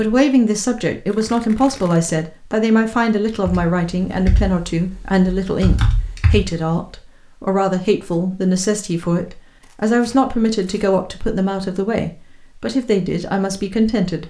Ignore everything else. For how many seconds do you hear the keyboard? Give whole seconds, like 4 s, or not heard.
3 s.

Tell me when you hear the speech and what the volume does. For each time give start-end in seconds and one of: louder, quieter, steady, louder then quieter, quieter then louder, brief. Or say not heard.
0.0-14.2 steady.